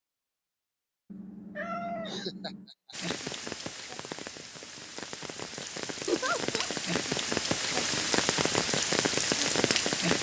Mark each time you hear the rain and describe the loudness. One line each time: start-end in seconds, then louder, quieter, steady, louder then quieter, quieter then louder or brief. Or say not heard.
2.9-10.1 louder.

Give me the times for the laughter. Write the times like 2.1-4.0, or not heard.
2.0-3.1, 6.0-6.7.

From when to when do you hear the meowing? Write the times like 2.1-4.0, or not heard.
1.1-2.6.